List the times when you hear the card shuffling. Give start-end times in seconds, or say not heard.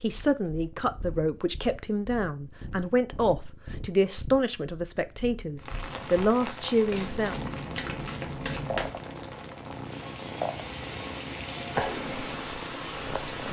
6.9-8.9.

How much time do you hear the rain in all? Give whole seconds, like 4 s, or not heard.
8 s.